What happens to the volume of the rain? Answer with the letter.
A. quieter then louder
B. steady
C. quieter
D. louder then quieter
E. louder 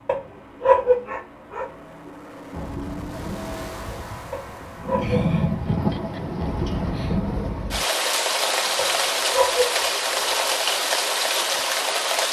E.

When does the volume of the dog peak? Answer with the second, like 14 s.
1 s.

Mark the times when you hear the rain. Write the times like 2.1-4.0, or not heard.
2.5-12.2.